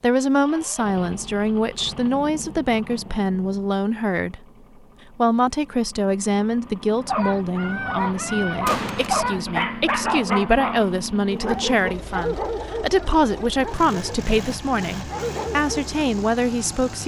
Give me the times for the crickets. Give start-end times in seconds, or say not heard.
not heard.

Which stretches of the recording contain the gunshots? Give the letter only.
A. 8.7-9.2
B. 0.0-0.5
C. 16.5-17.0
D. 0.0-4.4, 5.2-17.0
A.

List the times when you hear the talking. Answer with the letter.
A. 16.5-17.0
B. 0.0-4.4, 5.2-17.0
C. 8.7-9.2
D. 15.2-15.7
B.